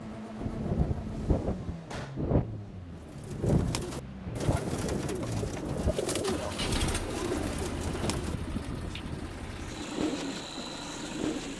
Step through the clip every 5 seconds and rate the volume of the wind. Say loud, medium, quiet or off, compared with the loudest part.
loud, medium, off.